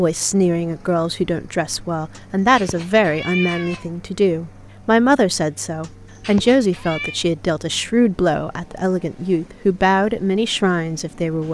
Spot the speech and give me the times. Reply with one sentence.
You can hear the speech from 0.0 to 11.4 s.